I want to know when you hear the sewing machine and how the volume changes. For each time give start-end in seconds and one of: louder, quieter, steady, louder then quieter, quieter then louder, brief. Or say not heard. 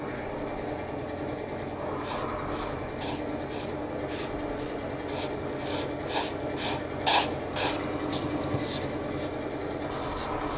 0.0-10.5 steady.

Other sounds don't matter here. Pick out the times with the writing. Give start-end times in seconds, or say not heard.
2.0-10.5.